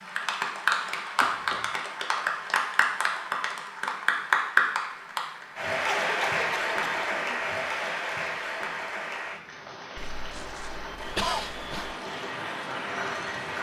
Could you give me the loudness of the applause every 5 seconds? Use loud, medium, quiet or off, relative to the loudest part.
loud, loud, medium.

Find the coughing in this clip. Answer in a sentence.
The coughing can be heard from 1.2 to 1.8 s, from 5.8 to 7.5 s and from 9.9 to 11.9 s.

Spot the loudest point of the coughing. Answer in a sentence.
The loudest moment of the coughing is at 11 seconds.